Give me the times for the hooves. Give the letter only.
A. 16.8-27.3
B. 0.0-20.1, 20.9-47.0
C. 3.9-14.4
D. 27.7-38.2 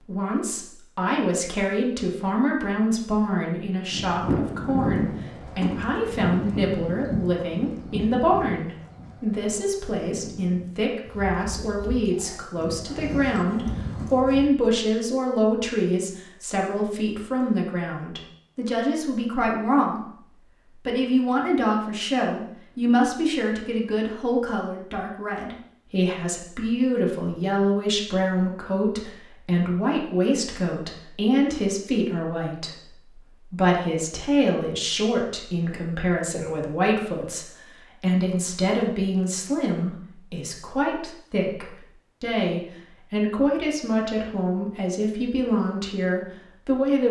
C.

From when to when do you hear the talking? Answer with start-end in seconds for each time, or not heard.
0.0-20.1, 20.9-47.0.